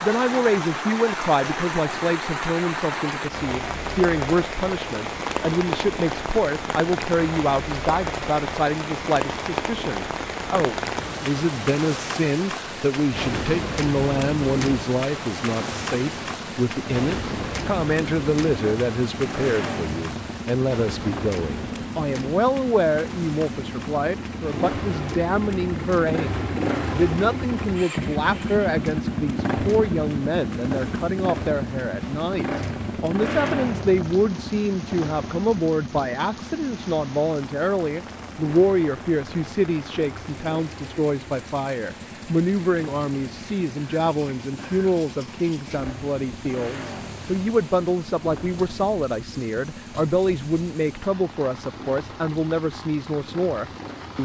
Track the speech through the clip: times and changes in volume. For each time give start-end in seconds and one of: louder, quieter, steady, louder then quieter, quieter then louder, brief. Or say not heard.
0.0-54.2 steady.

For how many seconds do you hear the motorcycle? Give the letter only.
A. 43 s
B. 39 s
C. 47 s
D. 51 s
B.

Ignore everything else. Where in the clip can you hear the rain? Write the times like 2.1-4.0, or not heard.
0.0-54.2.